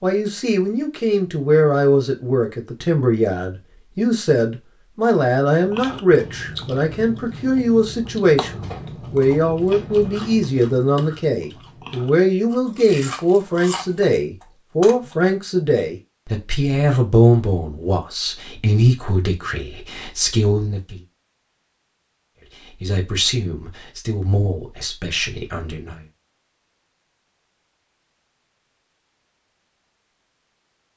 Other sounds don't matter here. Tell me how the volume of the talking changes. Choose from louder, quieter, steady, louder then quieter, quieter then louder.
quieter.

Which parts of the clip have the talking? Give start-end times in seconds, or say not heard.
0.0-21.0, 22.6-26.1.